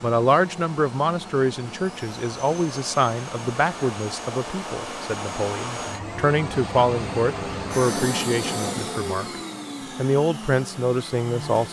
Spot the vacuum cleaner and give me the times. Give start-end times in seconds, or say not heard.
0.0-11.6.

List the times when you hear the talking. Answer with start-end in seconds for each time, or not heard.
0.0-9.2, 9.9-11.6.